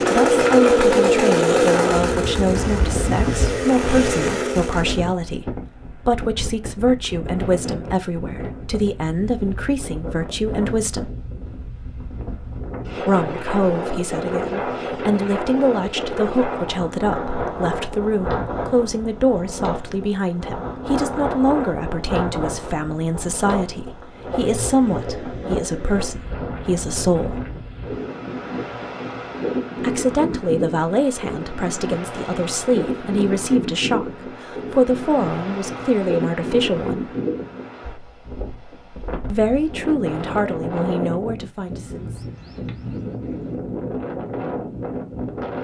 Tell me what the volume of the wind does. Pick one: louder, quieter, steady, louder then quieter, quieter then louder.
steady.